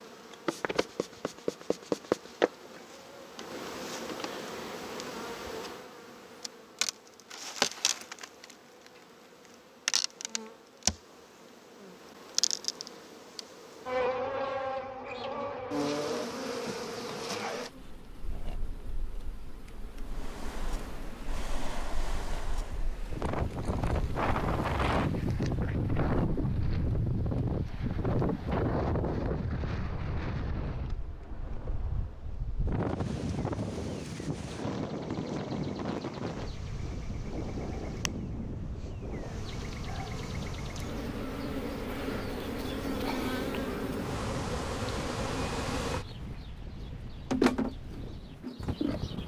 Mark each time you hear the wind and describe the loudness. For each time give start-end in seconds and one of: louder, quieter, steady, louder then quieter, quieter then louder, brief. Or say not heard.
20.1-49.2 quieter.